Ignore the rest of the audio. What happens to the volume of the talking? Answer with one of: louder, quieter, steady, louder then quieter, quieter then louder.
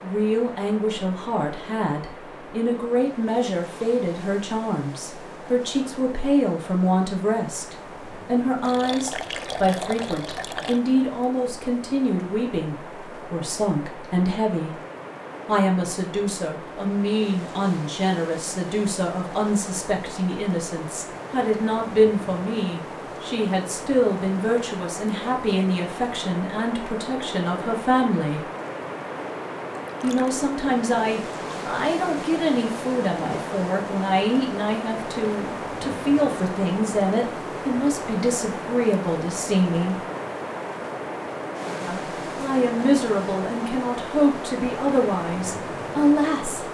steady.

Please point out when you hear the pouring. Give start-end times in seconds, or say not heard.
8.6-10.8, 29.9-30.4.